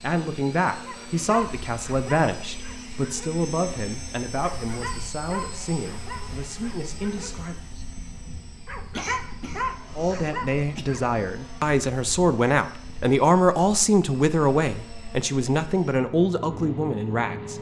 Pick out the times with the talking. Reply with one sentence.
The talking can be heard from 0.0 to 7.6 s and from 9.9 to 17.5 s.